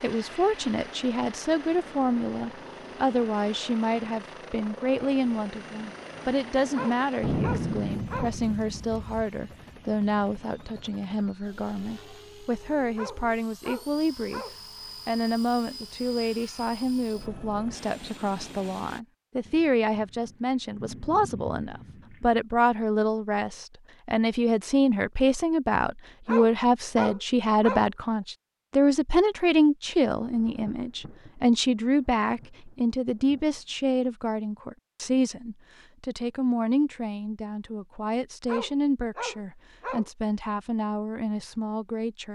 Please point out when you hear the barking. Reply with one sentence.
You can hear the barking from 6.7 to 8.4 s, from 12.9 to 14.6 s, from 26.2 to 27.9 s and from 38.5 to 40.1 s.